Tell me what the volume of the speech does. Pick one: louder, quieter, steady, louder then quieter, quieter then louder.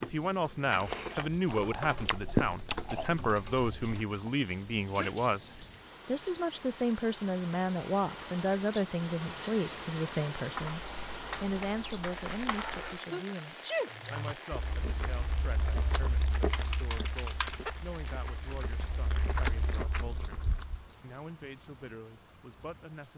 quieter.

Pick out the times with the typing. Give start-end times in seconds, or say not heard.
1.4-4.0, 10.6-13.0, 16.5-18.9.